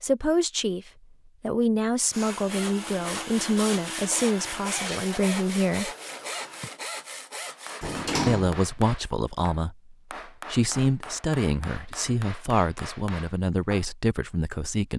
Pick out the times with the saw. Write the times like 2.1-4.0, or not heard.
2.0-8.2.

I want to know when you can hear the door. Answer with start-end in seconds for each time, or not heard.
7.8-8.6.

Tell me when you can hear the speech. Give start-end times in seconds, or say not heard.
0.0-5.9, 8.2-14.9.